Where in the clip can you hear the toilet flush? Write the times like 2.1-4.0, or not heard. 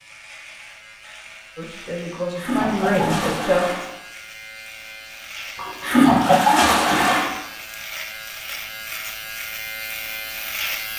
2.1-3.9, 5.5-7.3.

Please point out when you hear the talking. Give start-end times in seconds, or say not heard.
1.6-3.8.